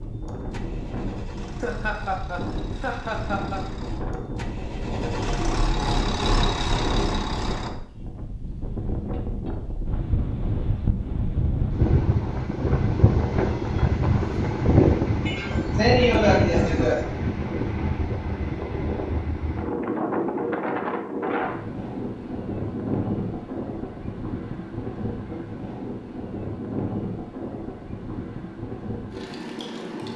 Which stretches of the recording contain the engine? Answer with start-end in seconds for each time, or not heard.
0.0-7.7.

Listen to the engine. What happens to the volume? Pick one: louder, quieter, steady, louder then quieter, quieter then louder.
louder.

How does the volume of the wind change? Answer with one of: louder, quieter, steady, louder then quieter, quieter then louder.
louder then quieter.